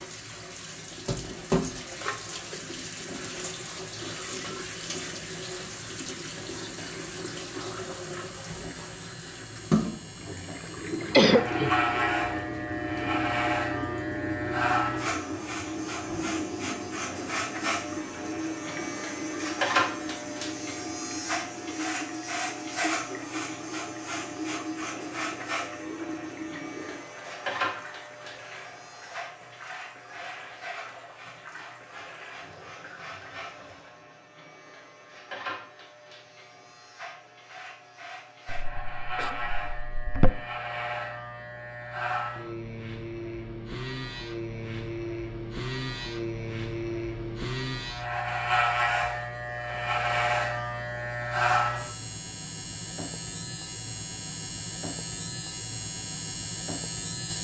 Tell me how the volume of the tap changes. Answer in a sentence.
The loudness of the tap goes down.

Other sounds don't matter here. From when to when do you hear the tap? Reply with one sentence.
The tap can be heard from 0.0 to 34.0 s.